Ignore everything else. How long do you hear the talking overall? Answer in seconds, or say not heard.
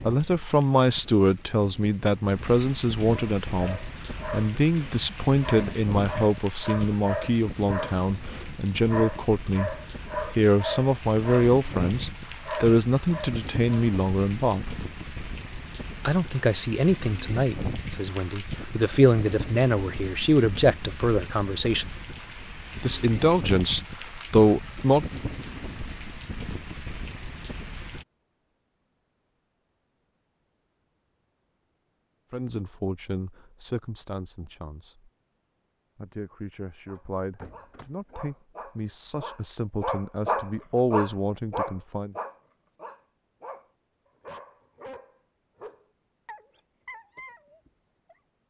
31 s.